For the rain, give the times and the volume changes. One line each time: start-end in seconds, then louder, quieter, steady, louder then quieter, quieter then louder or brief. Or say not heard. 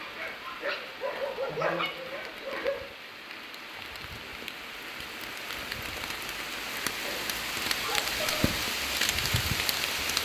0.0-10.2 louder.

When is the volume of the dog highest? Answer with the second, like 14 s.
2 s.